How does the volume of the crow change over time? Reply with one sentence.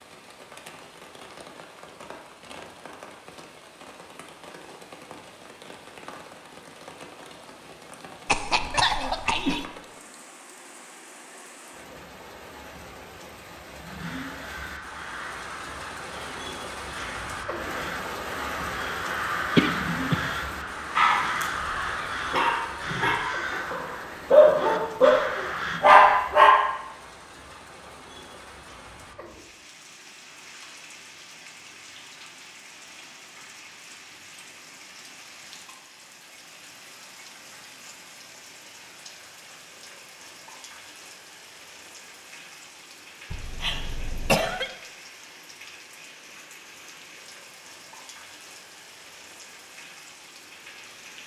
The volume of the crow goes up.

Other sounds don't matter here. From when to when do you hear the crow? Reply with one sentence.
The crow can be heard from 13.8 to 25.8 s.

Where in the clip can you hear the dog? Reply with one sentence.
The dog can be heard from 20.9 to 26.6 s.